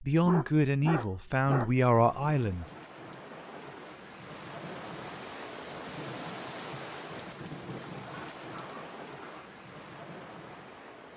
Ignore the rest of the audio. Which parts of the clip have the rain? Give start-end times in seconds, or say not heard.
1.9-11.1.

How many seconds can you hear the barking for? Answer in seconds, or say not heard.
3 s.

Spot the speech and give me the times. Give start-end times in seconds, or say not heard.
0.0-2.6.